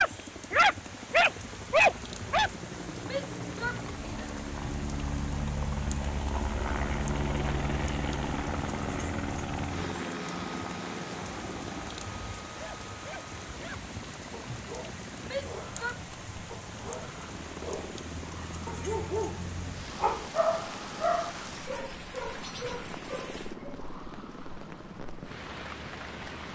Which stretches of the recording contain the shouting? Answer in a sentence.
You can hear the shouting from 3.0 to 4.3 s and from 15.2 to 16.0 s.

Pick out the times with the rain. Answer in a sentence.
You can hear the rain from 0.0 to 26.4 s.